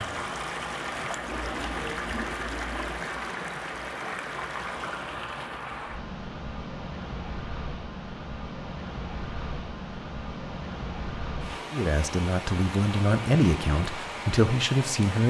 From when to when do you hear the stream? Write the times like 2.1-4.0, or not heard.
0.0-15.2.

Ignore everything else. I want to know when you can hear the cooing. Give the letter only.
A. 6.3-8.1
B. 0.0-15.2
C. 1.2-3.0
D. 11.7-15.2
C.